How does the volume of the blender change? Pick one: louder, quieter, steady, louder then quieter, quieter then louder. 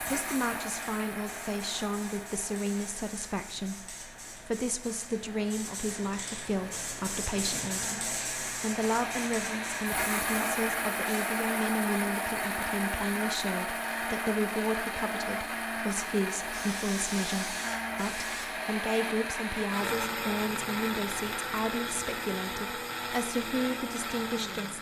louder.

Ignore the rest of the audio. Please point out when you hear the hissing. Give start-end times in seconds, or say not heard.
0.0-11.2, 16.4-18.5.